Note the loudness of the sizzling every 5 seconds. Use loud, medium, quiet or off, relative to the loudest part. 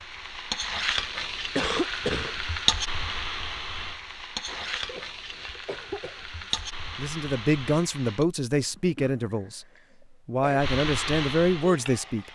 loud, medium, loud.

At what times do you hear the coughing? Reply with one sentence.
The coughing can be heard from 1.6 to 2.4 s, from 4.5 to 6.2 s and from 8.6 to 10.6 s.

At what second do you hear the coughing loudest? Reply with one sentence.
The loudest moment of the coughing is at 2 seconds.